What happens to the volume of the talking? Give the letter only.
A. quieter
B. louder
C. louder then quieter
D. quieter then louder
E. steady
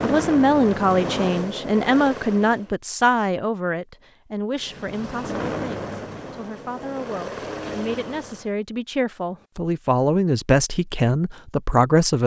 D.